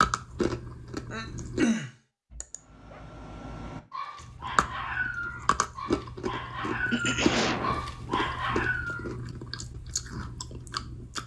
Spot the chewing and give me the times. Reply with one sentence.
The chewing can be heard from 0.0 to 1.6 s and from 4.2 to 11.2 s.